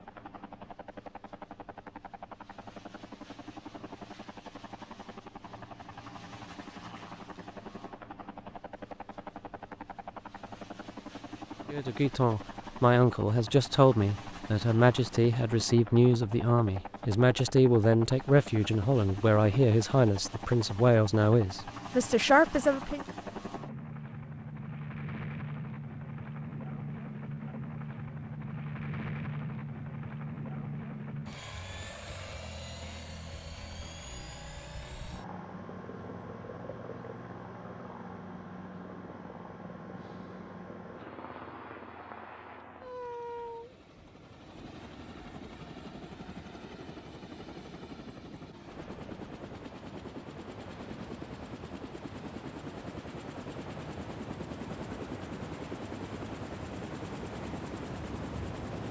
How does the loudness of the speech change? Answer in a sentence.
The volume of the speech stays about the same.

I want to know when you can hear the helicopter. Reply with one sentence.
The helicopter can be heard from 0.0 to 58.8 s.